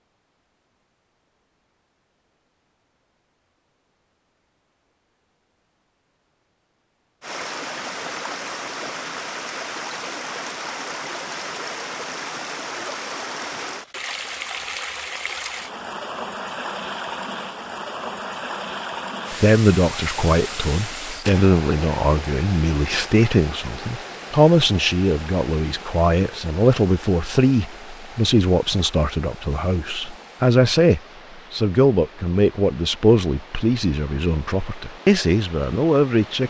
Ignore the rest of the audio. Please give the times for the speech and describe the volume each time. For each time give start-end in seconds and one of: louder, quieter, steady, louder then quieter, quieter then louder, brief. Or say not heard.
19.3-36.4 steady.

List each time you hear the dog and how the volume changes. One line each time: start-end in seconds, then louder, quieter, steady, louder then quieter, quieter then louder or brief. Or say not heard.
not heard.